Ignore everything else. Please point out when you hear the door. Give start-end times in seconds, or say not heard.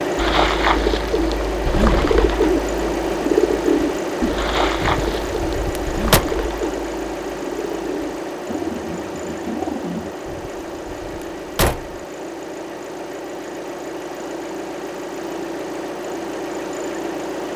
4.8-6.2, 10.2-12.0.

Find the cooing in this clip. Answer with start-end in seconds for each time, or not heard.
0.1-10.2.